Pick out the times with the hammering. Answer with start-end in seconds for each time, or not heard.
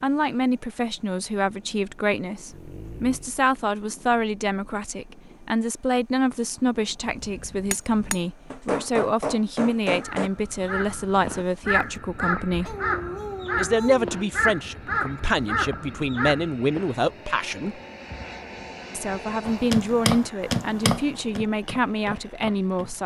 7.0-10.3, 19.4-23.0.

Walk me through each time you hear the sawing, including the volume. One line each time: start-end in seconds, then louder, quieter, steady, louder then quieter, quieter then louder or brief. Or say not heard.
not heard.